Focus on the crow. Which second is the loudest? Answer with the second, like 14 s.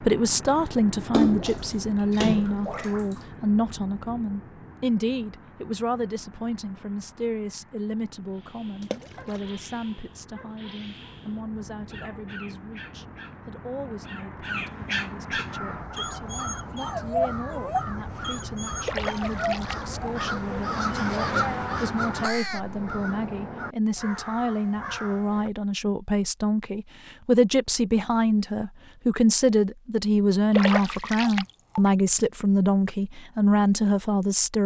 21 s.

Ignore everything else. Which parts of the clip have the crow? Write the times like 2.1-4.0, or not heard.
15.4-25.6.